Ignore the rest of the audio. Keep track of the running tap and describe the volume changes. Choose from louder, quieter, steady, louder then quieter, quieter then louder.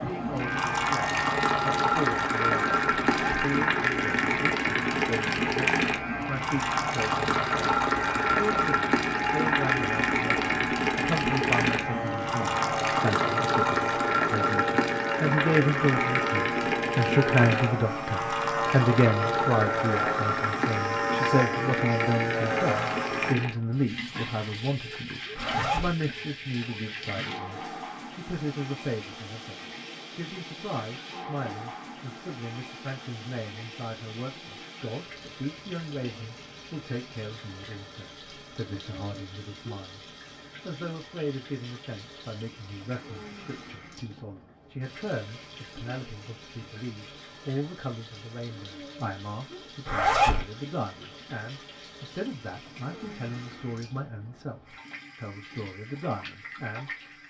quieter.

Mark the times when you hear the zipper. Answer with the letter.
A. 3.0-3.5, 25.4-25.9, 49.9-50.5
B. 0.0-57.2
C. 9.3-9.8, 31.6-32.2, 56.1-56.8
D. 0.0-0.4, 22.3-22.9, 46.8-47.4
A.